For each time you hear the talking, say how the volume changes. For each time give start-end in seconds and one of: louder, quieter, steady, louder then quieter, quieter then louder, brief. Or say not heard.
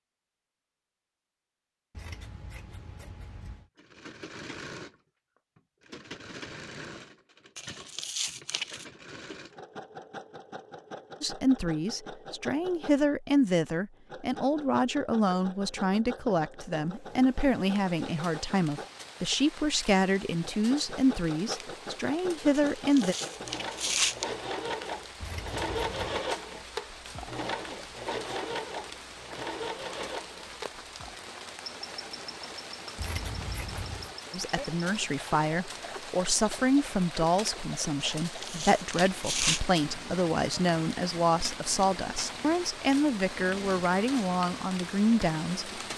11.2-23.1 steady
34.3-45.7 steady.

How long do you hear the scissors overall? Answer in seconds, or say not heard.
4 s.